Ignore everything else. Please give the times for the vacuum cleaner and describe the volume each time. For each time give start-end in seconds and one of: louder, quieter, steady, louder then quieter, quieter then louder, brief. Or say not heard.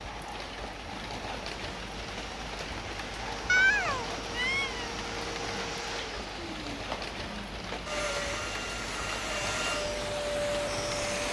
0.0-11.2 louder.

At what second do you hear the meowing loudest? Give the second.
4 s.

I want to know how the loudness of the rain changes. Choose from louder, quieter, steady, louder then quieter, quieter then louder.
steady.